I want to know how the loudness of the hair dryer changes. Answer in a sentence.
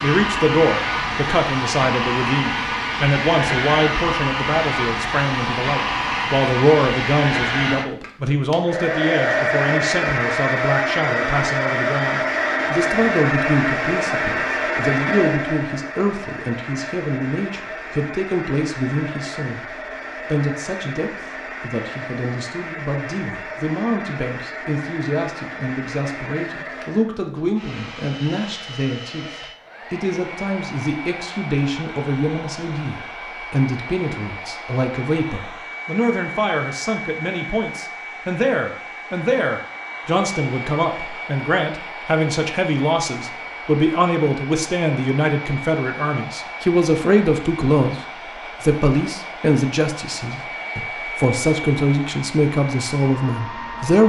The loudness of the hair dryer goes down.